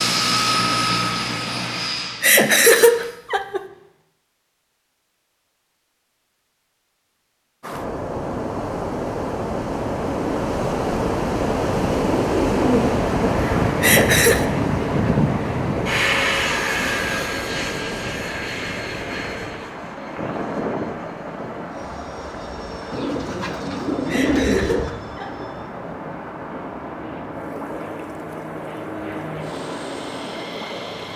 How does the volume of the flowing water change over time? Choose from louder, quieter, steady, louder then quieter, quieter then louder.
quieter.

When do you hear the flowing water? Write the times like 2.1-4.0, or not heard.
7.6-31.1.